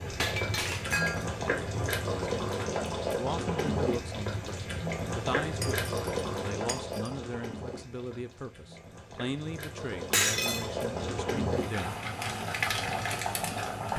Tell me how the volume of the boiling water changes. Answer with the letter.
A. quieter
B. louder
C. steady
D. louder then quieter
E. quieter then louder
E.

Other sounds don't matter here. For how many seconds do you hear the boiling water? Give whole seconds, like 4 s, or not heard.
14 s.